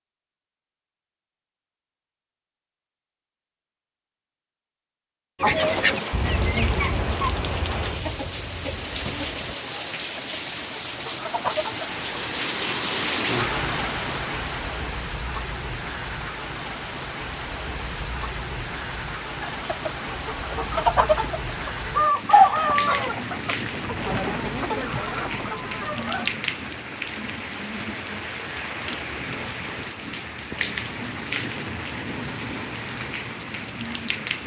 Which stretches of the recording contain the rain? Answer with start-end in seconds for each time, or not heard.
5.5-34.4.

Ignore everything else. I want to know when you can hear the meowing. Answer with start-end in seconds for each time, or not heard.
not heard.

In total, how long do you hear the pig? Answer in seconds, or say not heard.
not heard.